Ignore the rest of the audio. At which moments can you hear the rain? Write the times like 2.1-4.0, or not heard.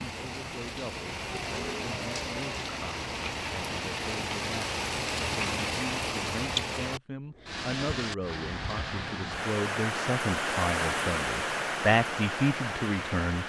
0.0-13.4.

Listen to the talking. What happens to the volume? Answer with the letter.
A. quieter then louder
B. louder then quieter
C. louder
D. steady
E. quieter
C.